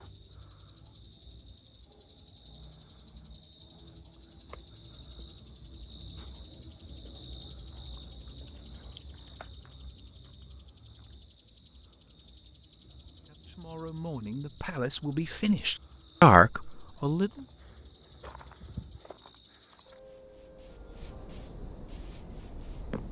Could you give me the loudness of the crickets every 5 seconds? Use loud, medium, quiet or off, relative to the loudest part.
medium, loud, loud, medium, medium.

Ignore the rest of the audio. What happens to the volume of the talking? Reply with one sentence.
The volume of the talking goes up.